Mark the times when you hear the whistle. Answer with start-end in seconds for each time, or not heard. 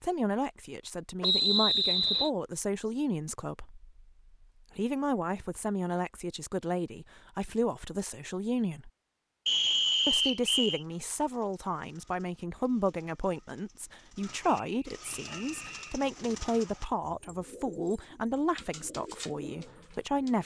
1.2-2.3, 9.4-10.8, 14.4-16.1.